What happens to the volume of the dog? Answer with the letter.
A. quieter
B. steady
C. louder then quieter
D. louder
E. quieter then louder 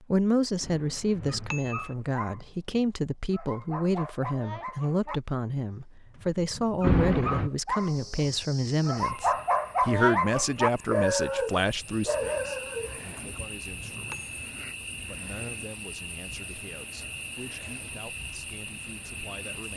D.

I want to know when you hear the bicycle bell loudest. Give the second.
7 s.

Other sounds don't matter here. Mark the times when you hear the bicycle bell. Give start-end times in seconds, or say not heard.
0.6-1.9, 6.8-7.5, 13.2-14.4.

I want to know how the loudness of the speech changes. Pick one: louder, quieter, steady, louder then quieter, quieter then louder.
quieter.